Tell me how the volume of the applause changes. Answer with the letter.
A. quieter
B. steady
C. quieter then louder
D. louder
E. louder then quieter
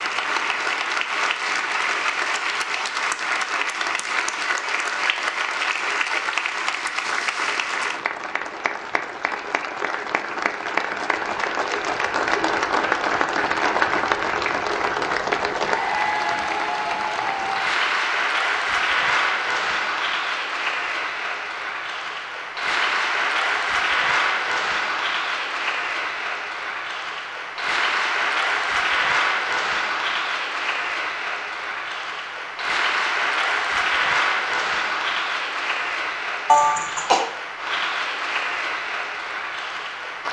B.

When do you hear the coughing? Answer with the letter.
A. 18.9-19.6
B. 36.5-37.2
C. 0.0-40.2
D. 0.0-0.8
B.